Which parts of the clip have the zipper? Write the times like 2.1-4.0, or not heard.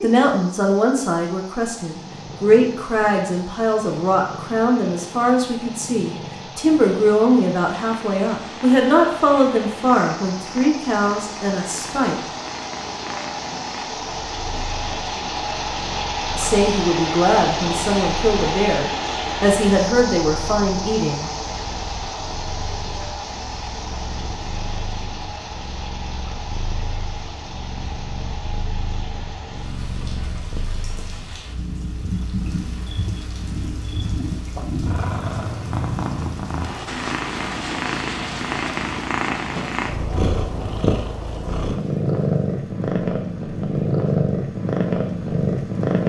not heard.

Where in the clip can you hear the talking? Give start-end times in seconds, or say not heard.
0.0-12.2, 16.4-21.3.